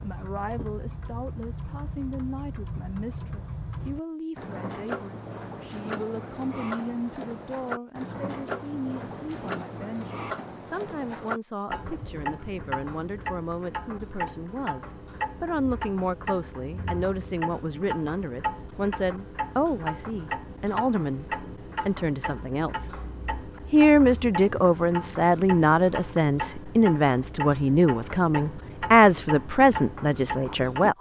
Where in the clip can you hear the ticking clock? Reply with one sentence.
You can hear the ticking clock from 0.0 to 30.9 s.